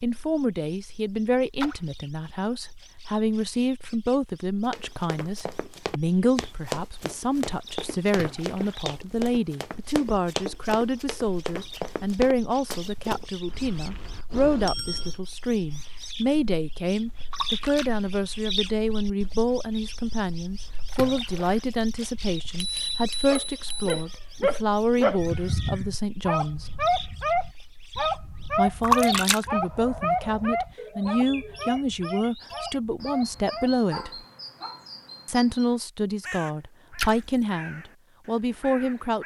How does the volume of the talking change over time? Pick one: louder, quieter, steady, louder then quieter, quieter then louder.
steady.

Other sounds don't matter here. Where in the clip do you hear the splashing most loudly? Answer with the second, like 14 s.
29 s.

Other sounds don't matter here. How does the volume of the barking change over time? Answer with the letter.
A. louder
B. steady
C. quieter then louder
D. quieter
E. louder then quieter
D.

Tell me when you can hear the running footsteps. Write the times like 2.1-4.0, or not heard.
4.7-13.2.